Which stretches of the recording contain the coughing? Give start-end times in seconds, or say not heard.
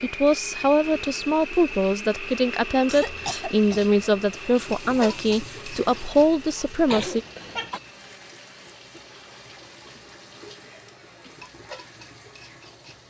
2.9-4.0, 6.8-7.8.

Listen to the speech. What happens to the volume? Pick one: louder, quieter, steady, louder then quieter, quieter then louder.
steady.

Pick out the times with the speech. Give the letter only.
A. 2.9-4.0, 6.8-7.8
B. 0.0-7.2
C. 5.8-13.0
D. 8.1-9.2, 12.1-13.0
B.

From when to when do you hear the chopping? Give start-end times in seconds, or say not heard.
not heard.